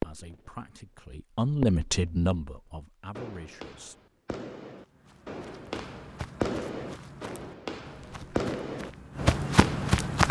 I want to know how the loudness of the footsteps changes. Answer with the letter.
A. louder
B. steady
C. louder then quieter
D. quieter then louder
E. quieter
A.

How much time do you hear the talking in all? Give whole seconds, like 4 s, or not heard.
4 s.